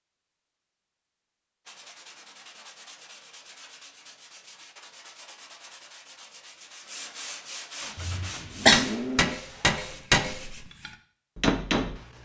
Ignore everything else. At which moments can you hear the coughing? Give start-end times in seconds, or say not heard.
8.0-8.8.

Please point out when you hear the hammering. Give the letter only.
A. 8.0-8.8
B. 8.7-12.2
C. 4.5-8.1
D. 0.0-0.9
B.